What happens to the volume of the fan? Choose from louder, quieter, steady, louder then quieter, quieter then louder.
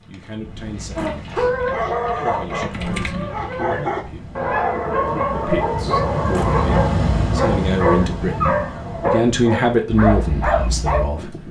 louder then quieter.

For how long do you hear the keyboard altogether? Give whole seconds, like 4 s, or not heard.
4 s.